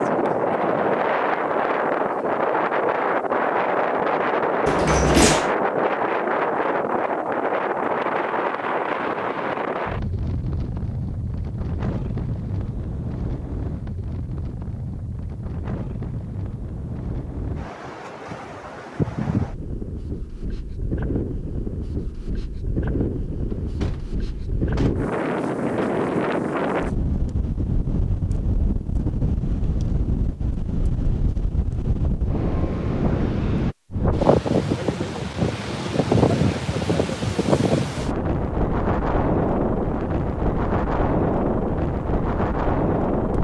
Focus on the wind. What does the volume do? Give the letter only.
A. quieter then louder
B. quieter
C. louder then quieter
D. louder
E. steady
A.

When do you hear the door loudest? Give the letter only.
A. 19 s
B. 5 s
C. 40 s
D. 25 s
B.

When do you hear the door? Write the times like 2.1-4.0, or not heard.
4.7-5.5, 23.5-25.1.